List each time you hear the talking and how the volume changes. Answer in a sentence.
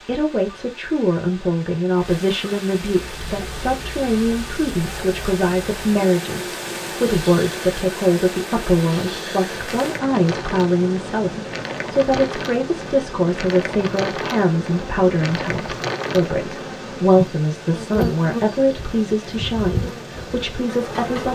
The talking can be heard from 0.0 to 21.3 s, at a steady volume.